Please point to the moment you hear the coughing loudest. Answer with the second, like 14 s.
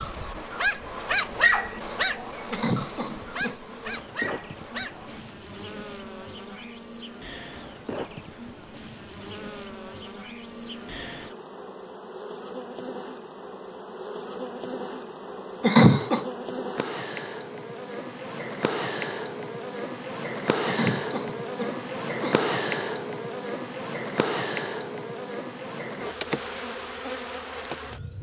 16 s.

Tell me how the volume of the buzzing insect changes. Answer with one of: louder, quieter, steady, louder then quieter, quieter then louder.
louder.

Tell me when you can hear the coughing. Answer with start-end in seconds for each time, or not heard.
2.5-3.6, 15.6-16.2, 20.6-22.4.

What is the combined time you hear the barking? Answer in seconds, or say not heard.
5 s.